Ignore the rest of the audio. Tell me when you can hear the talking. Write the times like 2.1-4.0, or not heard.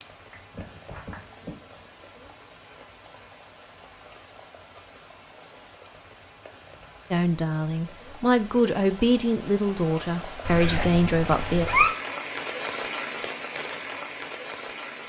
7.1-11.7.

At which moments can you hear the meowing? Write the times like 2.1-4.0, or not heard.
0.3-1.6, 10.4-11.9.